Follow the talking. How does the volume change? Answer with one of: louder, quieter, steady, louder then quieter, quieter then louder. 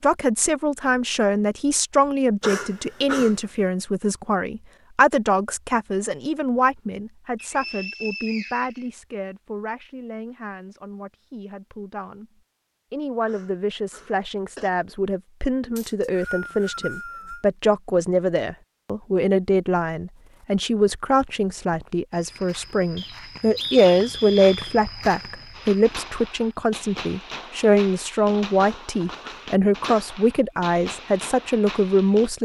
quieter then louder.